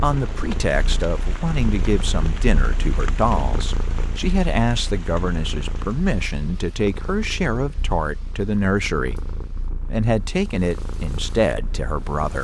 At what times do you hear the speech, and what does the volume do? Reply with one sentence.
You can hear the speech from 0.0 to 9.2 s, at a steady volume; and briefly from 9.8 to 12.4 s.